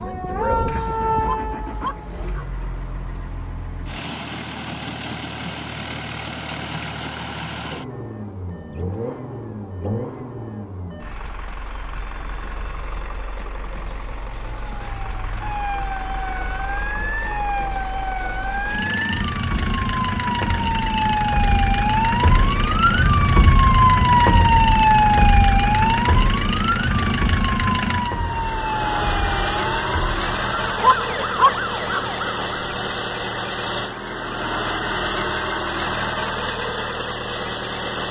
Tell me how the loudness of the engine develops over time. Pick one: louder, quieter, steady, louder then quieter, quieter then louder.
louder.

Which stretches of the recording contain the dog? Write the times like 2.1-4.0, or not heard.
1.2-2.5, 30.8-32.0.